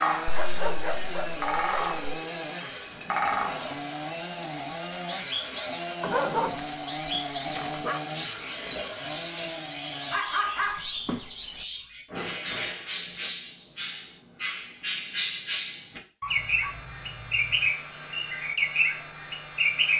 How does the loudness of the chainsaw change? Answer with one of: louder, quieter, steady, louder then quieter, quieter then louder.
steady.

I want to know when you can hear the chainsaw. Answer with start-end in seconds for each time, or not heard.
0.0-10.2.